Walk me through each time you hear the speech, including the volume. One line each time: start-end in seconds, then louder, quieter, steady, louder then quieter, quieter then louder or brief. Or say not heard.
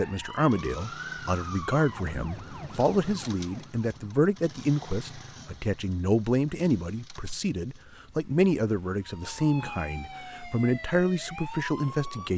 0.0-12.3 steady.